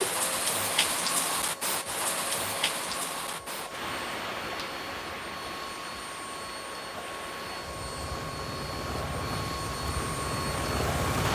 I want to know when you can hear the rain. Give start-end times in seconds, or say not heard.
0.0-11.3.